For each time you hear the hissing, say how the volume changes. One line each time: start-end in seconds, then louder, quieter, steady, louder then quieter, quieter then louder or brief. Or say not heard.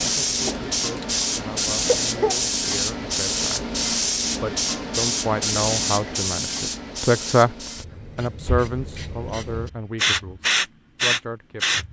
0.0-11.8 quieter then louder.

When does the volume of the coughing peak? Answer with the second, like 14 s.
2 s.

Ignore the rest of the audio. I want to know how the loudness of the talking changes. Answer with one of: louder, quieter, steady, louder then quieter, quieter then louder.
louder then quieter.